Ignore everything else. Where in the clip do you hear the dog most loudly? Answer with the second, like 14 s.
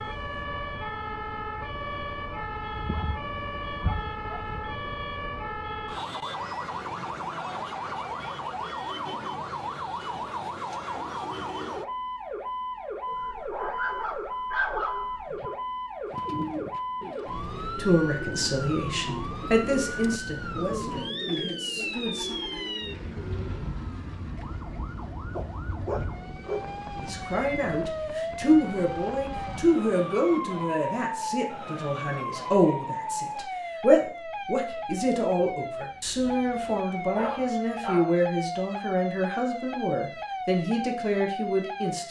15 s.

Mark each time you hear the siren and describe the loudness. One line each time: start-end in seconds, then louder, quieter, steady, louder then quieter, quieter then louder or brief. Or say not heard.
0.0-42.0 steady.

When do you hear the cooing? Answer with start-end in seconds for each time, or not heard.
16.1-23.6.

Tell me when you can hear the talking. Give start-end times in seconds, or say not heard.
17.8-22.4, 26.9-42.0.